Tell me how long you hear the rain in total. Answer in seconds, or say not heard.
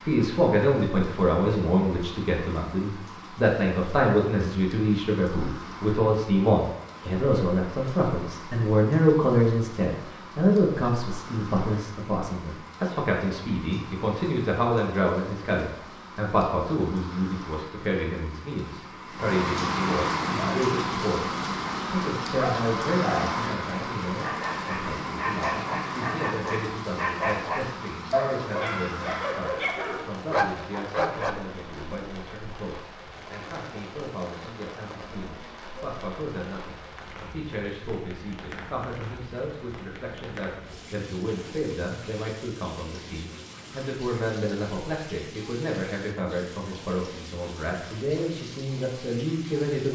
50 s.